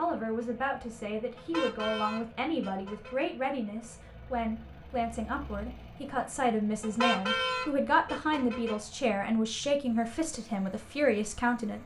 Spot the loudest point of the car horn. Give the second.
7 s.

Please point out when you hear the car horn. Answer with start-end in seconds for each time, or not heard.
1.4-3.2, 6.8-8.8.